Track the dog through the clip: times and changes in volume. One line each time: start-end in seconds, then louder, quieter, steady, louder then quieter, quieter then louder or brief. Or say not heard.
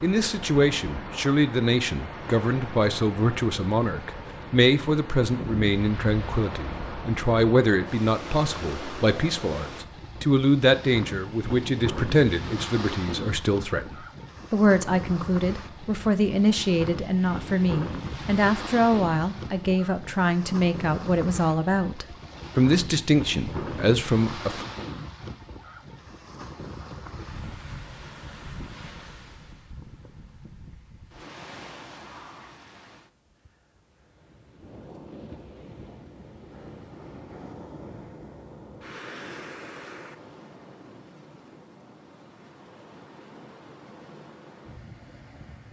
not heard.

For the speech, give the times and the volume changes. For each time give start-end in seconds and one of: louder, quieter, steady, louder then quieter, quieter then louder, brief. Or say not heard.
0.0-24.6 steady.